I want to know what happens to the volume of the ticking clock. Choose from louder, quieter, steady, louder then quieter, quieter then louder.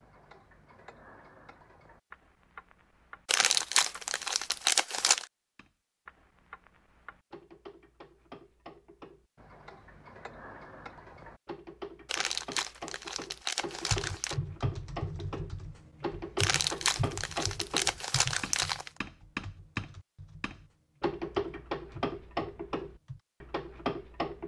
louder.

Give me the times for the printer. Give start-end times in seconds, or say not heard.
not heard.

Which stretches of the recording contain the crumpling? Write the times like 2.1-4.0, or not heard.
3.2-5.2, 12.1-14.3, 16.4-18.9.